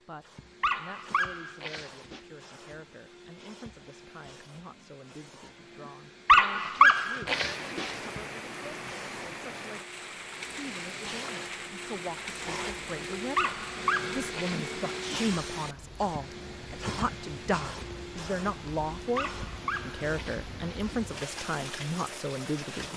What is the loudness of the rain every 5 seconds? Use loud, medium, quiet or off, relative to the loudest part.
off, loud, loud, medium, loud.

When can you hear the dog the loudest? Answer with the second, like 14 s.
7 s.